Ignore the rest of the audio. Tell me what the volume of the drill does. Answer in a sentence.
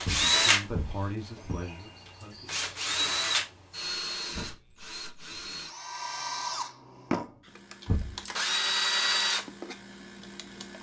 The volume of the drill goes down, then up.